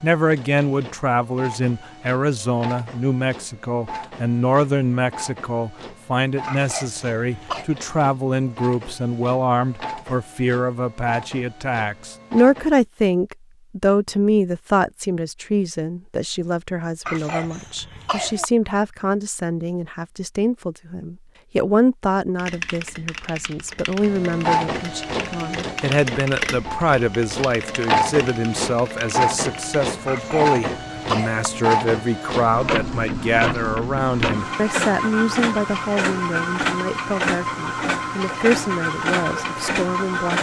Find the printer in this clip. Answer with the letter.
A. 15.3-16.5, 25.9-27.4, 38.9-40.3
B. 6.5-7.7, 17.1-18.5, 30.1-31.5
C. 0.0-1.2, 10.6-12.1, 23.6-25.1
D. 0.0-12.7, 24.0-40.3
D.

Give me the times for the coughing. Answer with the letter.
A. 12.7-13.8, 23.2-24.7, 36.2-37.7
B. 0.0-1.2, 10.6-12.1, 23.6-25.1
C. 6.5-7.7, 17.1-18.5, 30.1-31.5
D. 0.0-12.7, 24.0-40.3
C.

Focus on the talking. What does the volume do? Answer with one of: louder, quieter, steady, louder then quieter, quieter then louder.
steady.